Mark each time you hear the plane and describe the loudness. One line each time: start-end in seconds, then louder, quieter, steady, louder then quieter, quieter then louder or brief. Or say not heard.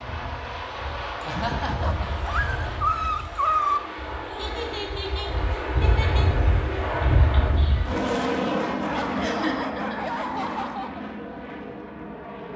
0.0-12.5 louder then quieter.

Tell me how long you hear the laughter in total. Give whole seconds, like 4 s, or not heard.
4 s.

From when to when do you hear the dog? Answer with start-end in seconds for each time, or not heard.
1.8-3.8, 8.8-11.1.